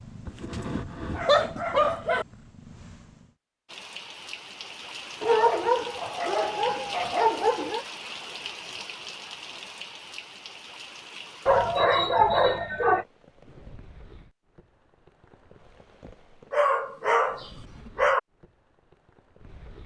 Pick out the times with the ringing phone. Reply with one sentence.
The ringing phone can't be heard in this clip.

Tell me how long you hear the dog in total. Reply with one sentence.
You can hear the dog for 8 seconds altogether.